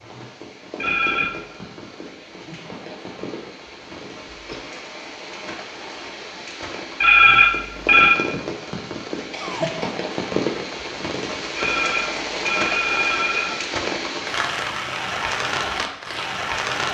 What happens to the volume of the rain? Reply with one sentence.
The loudness of the rain goes up.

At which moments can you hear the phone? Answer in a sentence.
You can hear the phone from 0.8 to 1.3 s, from 7.0 to 8.2 s and from 11.6 to 13.6 s.